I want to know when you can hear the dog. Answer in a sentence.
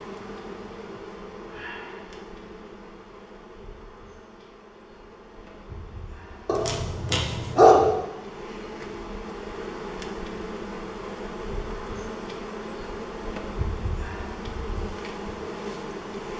You can hear the dog from 6.5 to 7.9 s.